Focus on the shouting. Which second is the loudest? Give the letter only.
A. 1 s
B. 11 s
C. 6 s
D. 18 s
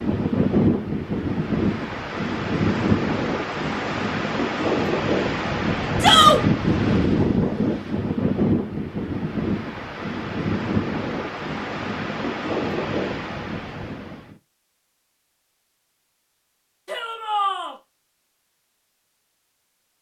C.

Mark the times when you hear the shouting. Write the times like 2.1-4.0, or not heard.
6.0-6.4, 16.9-17.8.